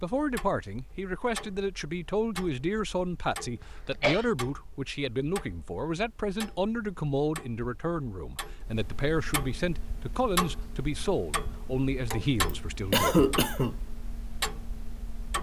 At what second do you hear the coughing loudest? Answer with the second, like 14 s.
13 s.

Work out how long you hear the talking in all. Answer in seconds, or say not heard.
13 s.